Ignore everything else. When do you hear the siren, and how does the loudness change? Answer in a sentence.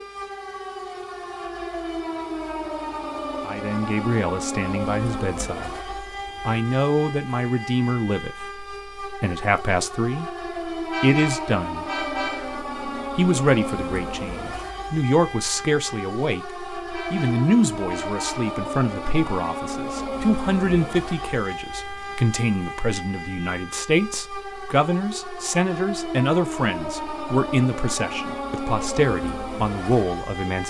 The siren can be heard from 0.0 to 30.6 s, at a steady volume.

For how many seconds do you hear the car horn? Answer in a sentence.
The car horn can be heard for 3 seconds in total.